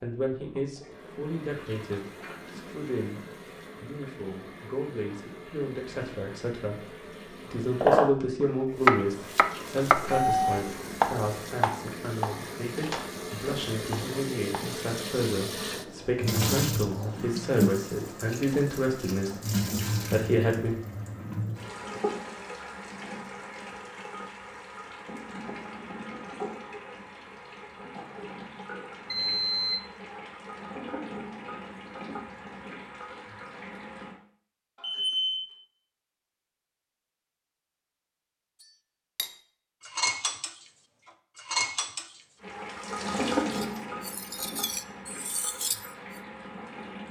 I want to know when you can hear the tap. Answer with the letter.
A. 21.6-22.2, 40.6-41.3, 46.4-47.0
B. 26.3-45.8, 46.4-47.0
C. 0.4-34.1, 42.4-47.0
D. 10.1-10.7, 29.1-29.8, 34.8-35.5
C.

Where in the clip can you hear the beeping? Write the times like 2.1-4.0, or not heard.
10.1-10.7, 29.1-29.8, 34.8-35.5.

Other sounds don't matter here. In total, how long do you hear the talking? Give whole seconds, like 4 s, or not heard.
20 s.